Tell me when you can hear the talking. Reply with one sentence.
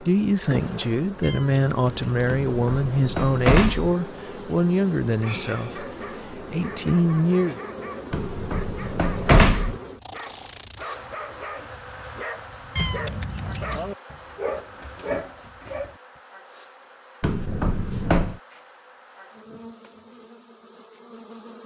You can hear the talking from 0.0 to 7.6 s.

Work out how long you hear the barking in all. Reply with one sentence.
The barking can be heard for 11 seconds in total.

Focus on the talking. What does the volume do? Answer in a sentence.
The loudness of the talking stays about the same.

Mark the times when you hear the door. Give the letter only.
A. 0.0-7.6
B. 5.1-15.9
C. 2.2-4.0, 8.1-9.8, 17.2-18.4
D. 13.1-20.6
C.